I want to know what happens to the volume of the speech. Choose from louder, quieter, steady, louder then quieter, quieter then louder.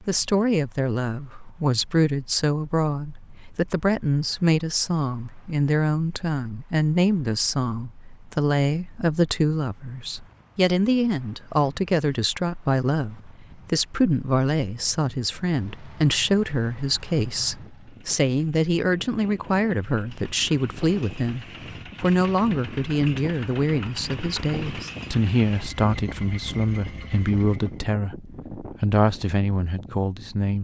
steady.